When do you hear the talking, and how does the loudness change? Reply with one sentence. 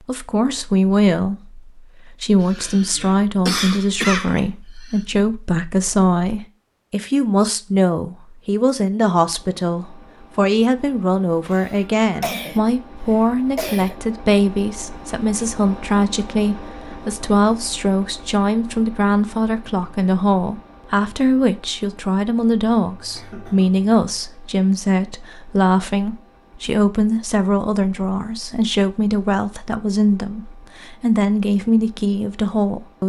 The talking can be heard from 0.1 to 33.0 s, at a steady volume.